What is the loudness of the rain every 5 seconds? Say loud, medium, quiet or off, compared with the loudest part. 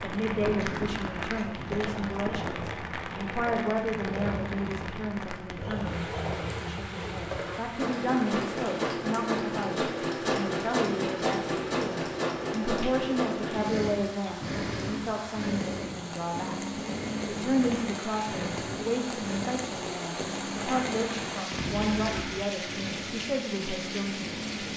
loud, medium, medium, loud, loud.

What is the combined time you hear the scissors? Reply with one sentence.
You can hear the scissors for 2 seconds altogether.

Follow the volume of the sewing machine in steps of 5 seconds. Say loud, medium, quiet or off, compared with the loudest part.
medium, loud, loud, medium, medium.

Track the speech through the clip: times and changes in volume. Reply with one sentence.
The speech can be heard from 0.0 to 16.6 s, at a steady volume; and from 17.2 to 24.3 s, at a steady volume.